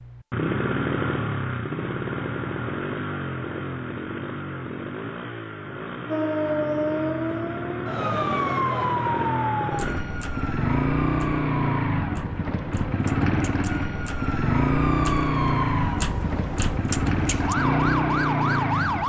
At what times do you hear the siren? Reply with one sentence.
The siren can be heard from 6.1 to 19.0 s.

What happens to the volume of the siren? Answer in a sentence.
The loudness of the siren goes down, then up.